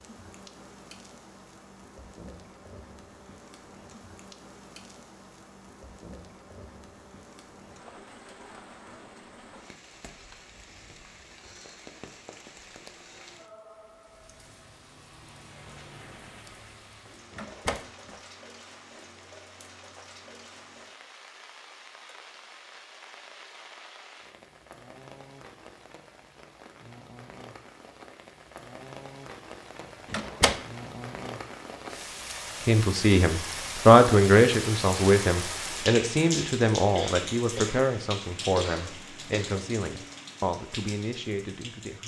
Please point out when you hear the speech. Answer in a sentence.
The speech can be heard from 32.6 to 42.0 s.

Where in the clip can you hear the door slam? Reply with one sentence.
You can hear the door slam from 17.4 to 18.1 s and from 30.1 to 30.6 s.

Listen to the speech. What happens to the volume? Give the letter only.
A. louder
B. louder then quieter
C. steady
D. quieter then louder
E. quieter
E.